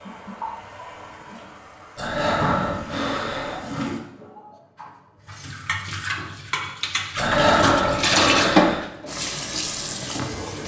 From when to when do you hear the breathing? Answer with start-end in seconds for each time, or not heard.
1.9-3.6, 7.2-8.8.